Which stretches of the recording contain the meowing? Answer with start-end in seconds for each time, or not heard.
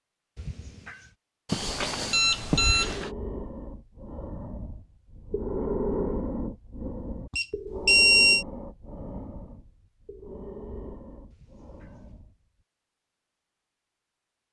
0.3-1.1, 11.3-12.2.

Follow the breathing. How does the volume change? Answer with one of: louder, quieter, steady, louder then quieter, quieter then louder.
louder then quieter.